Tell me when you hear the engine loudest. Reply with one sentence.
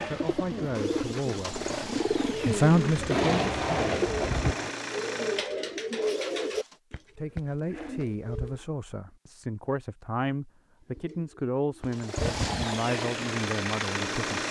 The loudest moment of the engine is at 14 seconds.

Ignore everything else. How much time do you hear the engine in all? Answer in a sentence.
You can hear the engine for 9 seconds altogether.